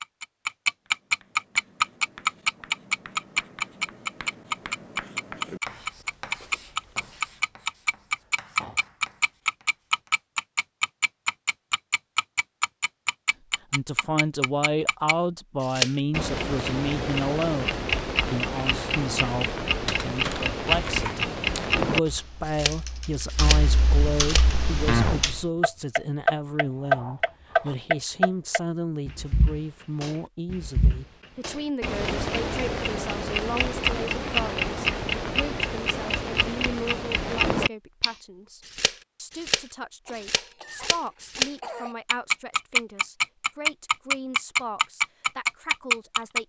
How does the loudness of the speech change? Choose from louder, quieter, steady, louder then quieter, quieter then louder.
quieter.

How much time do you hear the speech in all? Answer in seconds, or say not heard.
33 s.